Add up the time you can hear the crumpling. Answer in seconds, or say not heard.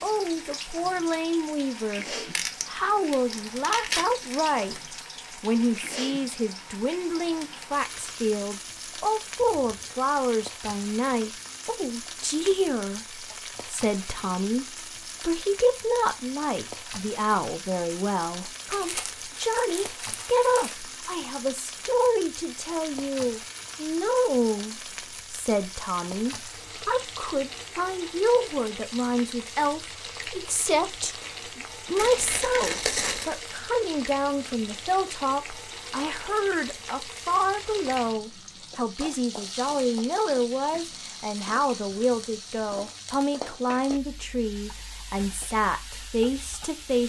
6 s.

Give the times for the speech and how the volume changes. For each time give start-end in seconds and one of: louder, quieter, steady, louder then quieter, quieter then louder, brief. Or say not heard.
0.0-4.8 quieter then louder
5.4-47.0 steady.